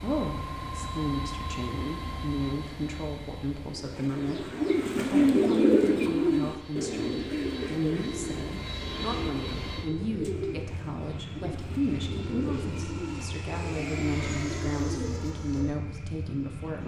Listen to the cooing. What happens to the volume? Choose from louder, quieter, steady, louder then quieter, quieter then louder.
quieter.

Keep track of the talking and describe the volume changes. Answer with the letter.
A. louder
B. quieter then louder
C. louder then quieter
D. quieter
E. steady
E.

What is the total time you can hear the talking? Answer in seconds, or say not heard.
17 s.